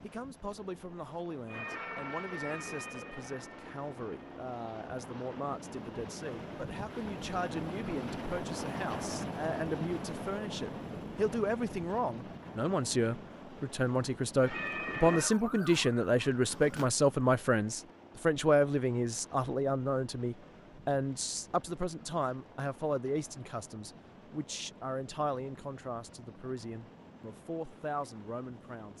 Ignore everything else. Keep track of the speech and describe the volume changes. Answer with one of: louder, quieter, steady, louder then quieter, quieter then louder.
louder then quieter.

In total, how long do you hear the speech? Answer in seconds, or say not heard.
29 s.